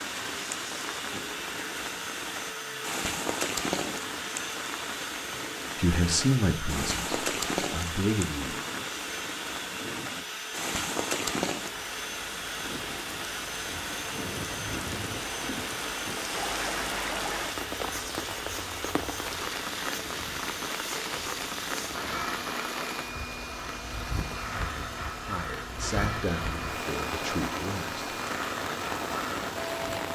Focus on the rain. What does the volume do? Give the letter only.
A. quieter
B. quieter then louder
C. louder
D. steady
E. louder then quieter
D.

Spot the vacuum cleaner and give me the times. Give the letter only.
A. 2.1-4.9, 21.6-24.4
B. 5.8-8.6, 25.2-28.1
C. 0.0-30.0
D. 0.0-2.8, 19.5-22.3
C.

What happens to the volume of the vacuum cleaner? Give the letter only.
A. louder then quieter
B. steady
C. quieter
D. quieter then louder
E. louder
B.